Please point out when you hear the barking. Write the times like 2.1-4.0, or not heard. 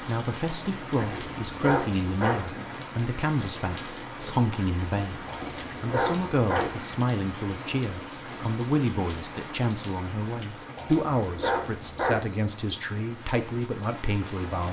0.9-2.5, 5.2-6.8, 10.8-12.3.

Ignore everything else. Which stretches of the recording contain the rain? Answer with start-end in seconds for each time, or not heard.
0.0-14.6.